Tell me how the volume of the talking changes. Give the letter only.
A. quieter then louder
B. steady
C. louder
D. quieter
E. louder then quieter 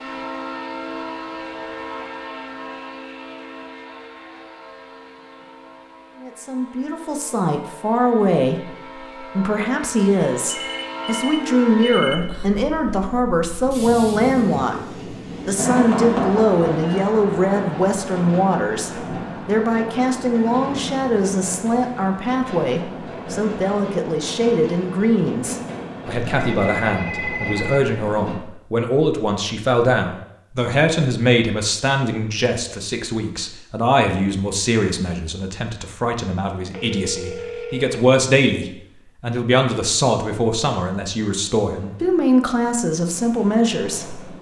B.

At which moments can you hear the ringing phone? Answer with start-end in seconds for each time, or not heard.
10.5-12.4, 26.4-27.9, 36.7-38.0.